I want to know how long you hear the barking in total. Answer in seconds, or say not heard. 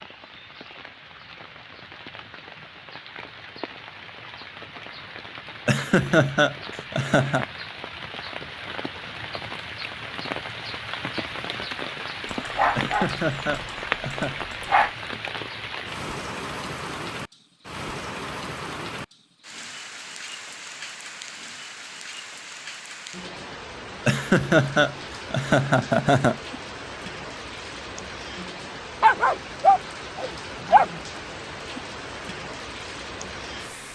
5 s.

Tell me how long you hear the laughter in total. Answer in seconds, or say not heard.
6 s.